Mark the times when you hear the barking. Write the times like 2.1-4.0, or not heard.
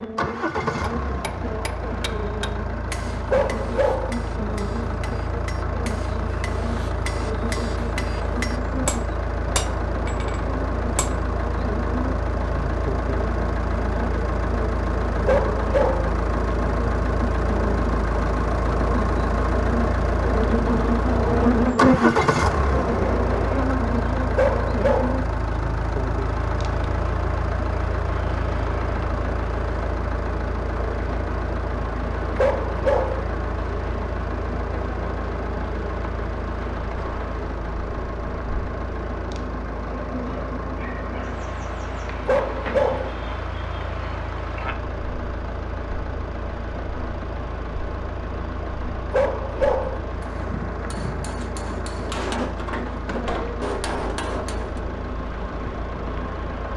3.3-4.2, 15.2-16.1, 24.4-25.2, 32.4-33.2, 42.2-43.1, 49.1-50.0.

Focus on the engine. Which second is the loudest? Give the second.
22 s.